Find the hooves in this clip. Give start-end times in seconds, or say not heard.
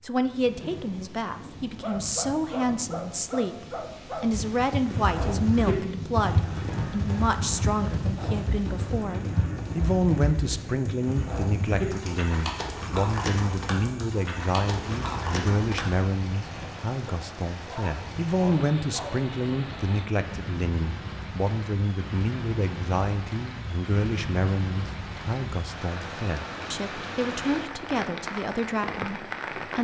4.3-16.0.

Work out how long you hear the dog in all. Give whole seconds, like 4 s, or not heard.
5 s.